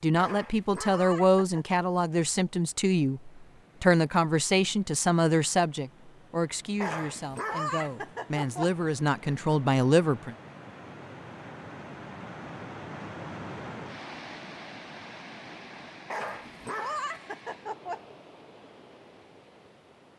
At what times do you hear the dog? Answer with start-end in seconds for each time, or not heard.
0.1-1.6, 6.8-8.7, 16.1-18.0.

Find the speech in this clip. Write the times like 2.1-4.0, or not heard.
0.0-10.3.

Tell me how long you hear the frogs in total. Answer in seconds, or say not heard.
not heard.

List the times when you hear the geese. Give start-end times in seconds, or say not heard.
not heard.